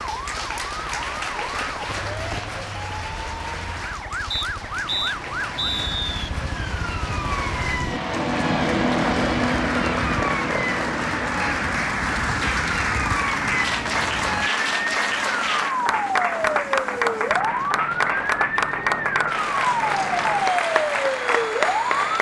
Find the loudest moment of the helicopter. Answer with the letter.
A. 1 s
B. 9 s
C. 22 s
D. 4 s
B.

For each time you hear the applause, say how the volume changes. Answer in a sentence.
You can hear the applause from 0.0 to 22.1 s, getting louder.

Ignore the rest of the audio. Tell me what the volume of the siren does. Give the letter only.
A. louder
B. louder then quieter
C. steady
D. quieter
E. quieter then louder
A.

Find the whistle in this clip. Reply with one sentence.
You can hear the whistle from 4.3 to 6.3 s.